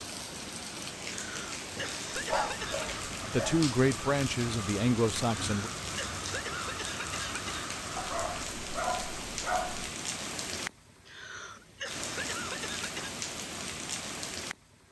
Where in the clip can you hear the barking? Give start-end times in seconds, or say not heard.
2.1-3.6, 8.0-9.9.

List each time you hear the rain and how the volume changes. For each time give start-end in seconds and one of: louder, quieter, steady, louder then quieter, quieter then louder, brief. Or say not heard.
0.0-14.8 steady.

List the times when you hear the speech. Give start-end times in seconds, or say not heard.
3.2-5.7.